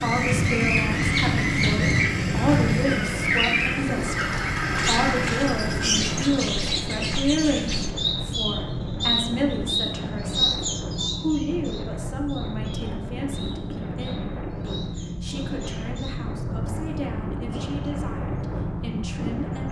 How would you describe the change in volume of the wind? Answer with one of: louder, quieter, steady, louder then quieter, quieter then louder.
steady.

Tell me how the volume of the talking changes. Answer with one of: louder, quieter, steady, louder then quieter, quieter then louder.
quieter.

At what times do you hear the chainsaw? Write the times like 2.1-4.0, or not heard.
0.0-6.3.